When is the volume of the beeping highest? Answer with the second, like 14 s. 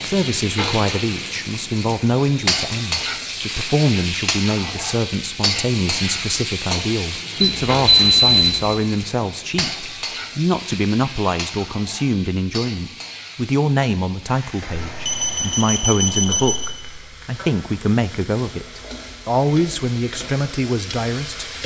8 s.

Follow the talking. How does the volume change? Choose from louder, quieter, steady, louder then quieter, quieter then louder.
steady.